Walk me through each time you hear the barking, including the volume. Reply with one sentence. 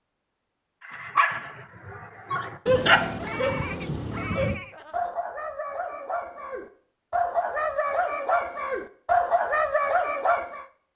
You can hear the barking from 0.8 to 10.7 s, getting quieter then louder.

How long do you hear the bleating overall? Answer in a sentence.
You can hear the bleating for 2 seconds altogether.